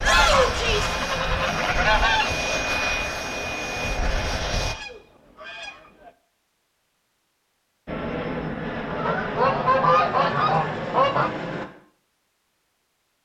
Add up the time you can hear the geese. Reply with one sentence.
The geese can be heard for 6 seconds in total.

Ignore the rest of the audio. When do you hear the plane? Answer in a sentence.
The plane can be heard from 0.0 to 4.8 s and from 7.8 to 11.7 s.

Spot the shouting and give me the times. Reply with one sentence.
You can hear the shouting from 0.0 to 0.9 s.